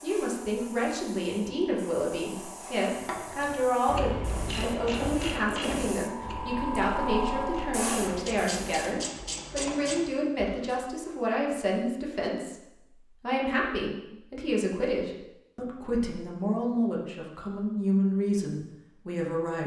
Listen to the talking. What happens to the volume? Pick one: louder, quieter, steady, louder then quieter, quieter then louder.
steady.